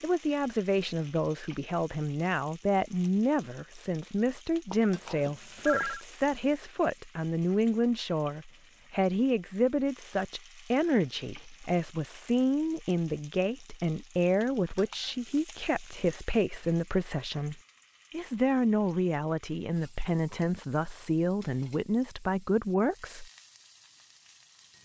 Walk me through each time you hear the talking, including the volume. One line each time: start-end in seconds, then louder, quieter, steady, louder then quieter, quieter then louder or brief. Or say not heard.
0.0-23.3 steady.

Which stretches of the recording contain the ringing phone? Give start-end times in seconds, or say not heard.
4.7-6.0.